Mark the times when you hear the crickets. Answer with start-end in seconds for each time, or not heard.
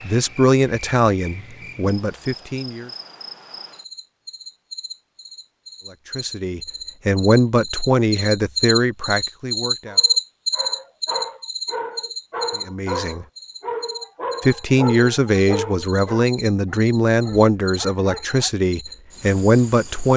0.0-20.1.